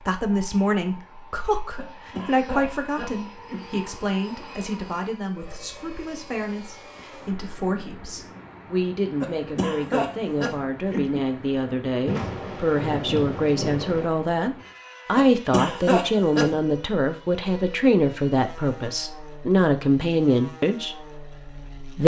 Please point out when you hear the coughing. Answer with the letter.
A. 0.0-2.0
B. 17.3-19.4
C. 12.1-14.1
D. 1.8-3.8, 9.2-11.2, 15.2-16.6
D.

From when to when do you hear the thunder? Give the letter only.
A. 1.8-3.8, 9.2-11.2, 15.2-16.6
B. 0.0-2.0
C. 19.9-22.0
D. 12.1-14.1
D.